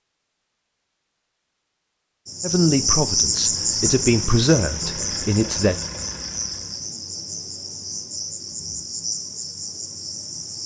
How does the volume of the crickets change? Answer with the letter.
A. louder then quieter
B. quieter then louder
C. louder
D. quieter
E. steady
D.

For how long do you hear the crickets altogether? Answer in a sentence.
You can hear the crickets for 8 seconds altogether.